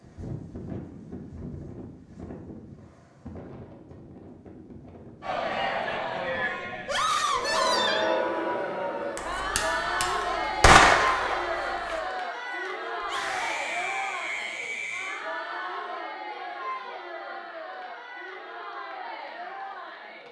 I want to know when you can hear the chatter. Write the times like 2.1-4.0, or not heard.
5.2-20.2.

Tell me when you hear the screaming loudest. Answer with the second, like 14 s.
7 s.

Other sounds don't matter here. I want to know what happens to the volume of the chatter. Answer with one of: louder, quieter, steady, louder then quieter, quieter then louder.
quieter.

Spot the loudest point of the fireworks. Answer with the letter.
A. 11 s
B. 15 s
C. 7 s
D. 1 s
A.